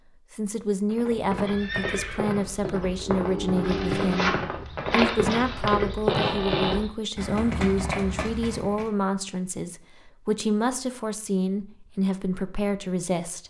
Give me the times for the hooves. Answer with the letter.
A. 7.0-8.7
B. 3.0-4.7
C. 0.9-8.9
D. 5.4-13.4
C.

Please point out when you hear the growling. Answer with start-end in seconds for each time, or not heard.
3.0-4.7.